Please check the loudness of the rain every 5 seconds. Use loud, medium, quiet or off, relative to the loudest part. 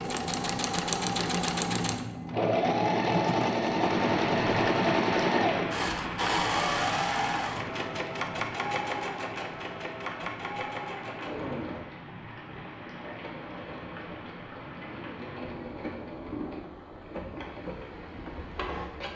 loud, loud, medium, medium.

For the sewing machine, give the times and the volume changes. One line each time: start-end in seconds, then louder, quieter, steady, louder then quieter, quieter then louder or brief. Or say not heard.
0.0-19.1 quieter.